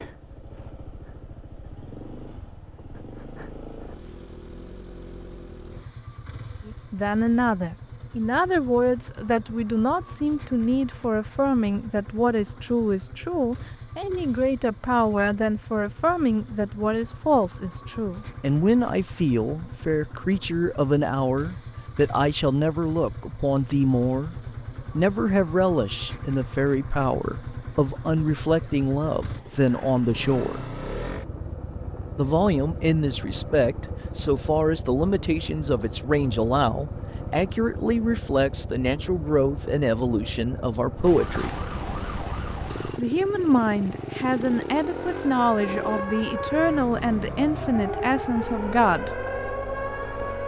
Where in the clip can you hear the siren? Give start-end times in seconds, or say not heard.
41.0-50.4.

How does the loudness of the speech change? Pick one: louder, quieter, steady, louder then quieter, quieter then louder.
steady.